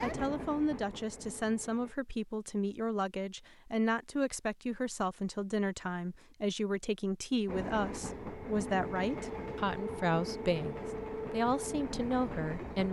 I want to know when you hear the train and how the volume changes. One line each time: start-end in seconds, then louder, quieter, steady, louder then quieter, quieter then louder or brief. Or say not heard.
0.0-1.9 brief
7.5-12.8 steady.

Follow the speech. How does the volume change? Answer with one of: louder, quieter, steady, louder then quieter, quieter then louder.
steady.